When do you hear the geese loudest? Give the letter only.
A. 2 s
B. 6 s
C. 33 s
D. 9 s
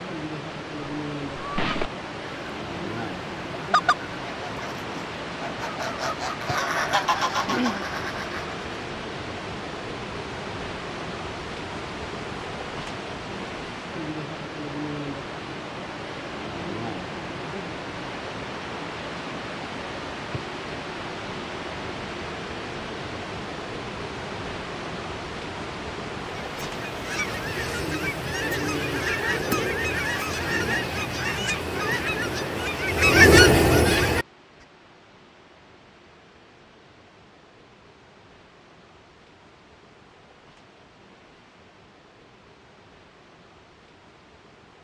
C.